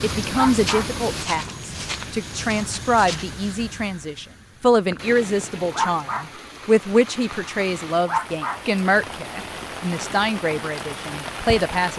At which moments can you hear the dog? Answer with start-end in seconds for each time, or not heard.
0.3-0.9, 5.7-6.2, 8.1-8.6.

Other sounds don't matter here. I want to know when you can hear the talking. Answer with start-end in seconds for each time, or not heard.
0.0-11.9.